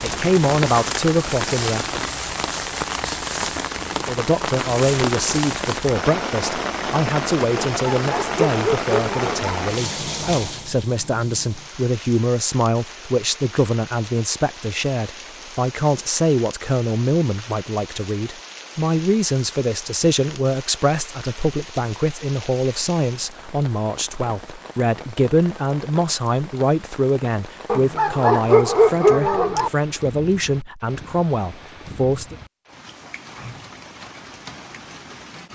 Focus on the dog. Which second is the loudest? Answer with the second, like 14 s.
29 s.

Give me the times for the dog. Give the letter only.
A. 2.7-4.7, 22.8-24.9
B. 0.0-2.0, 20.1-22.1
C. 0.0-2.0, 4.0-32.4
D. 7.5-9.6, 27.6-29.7
D.